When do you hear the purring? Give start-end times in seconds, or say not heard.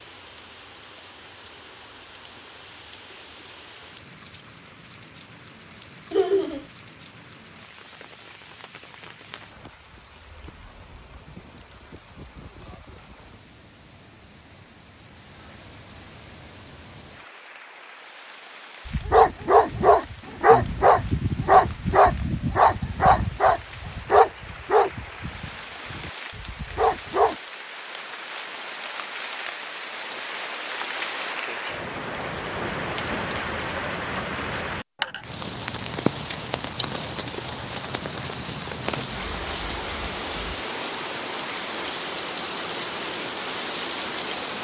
not heard.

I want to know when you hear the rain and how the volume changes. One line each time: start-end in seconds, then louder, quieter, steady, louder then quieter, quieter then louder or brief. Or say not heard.
0.0-44.5 louder.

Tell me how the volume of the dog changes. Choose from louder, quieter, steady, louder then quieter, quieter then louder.
quieter.